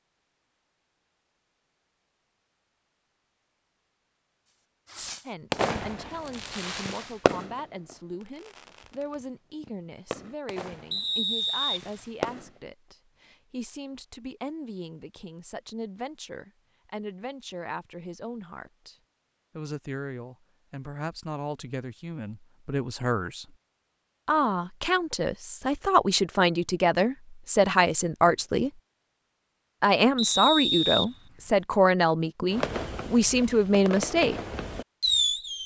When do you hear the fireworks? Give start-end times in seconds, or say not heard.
4.8-12.6, 32.5-35.6.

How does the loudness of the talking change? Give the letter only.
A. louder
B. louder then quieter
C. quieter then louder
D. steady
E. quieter
A.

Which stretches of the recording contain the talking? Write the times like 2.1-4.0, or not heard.
5.2-18.9, 19.6-23.6, 24.2-28.7, 29.8-34.4.